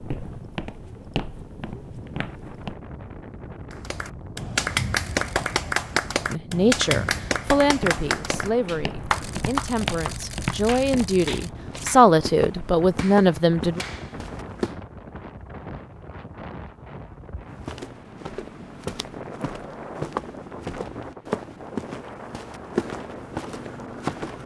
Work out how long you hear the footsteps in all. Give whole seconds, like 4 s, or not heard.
17 s.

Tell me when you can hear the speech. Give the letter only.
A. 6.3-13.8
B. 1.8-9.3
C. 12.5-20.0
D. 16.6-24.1
A.